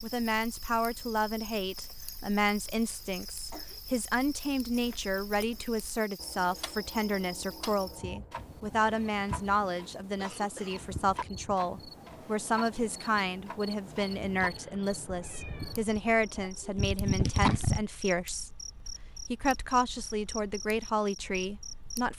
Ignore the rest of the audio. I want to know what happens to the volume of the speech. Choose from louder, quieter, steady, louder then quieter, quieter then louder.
steady.